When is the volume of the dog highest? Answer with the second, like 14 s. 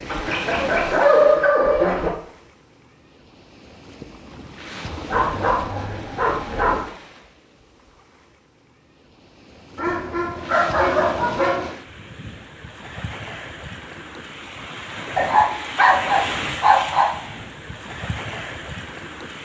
1 s.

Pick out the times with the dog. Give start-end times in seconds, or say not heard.
0.1-2.1, 5.0-6.8, 9.8-11.7, 15.2-17.1.